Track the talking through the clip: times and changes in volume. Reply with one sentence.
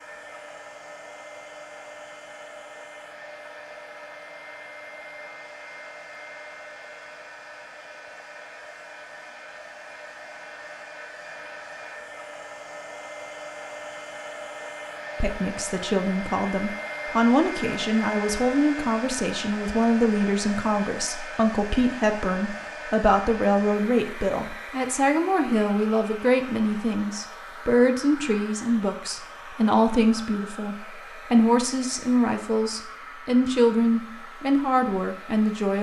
You can hear the talking from 15.2 to 35.7 s, at a steady volume.